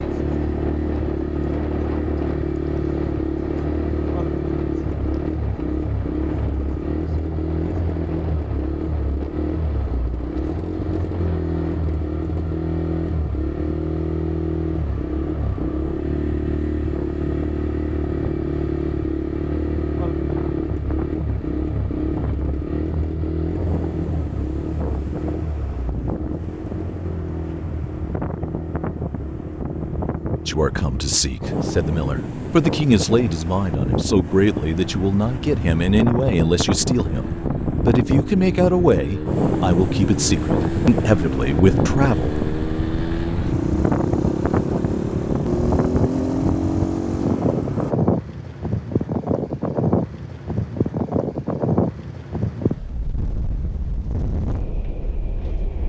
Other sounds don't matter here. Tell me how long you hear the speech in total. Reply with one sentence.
You can hear the speech for 12 seconds altogether.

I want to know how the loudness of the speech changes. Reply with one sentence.
The volume of the speech stays about the same.